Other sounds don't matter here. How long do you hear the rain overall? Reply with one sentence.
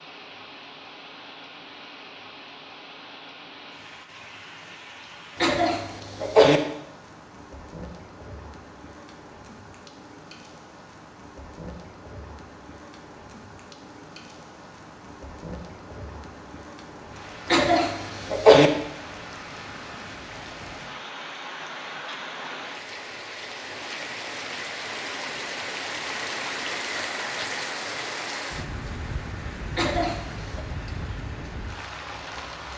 The rain can be heard for 33 seconds in total.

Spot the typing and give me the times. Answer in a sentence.
The typing can't be heard in this clip.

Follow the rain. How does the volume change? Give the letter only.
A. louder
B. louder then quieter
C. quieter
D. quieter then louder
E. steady
A.